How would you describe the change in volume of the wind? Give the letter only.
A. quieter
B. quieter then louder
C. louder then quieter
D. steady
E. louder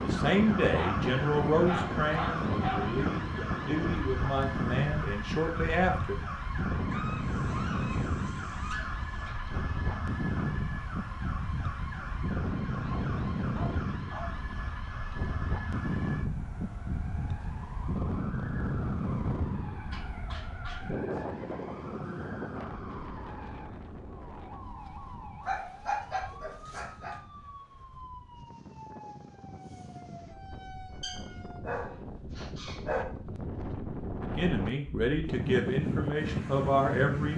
B.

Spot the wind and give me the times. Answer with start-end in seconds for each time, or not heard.
0.0-37.3.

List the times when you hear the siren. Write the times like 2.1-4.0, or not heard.
0.0-31.6.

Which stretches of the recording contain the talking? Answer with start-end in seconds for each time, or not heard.
0.0-6.2, 34.2-37.3.